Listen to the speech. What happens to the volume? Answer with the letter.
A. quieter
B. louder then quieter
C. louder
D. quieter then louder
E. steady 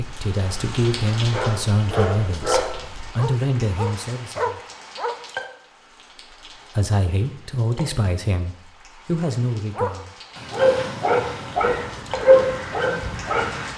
E.